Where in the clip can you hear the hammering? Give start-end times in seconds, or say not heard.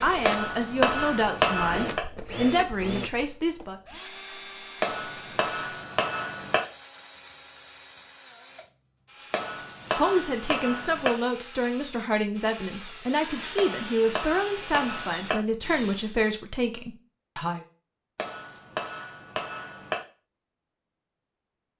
0.2-2.0, 4.8-6.6, 9.3-11.2, 13.6-15.4, 18.1-20.0.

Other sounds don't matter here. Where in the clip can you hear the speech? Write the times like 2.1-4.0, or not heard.
0.0-3.8, 9.9-17.6.